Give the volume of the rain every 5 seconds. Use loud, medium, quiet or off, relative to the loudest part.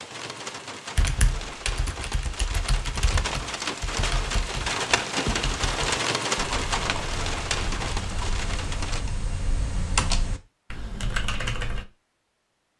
loud, loud, off.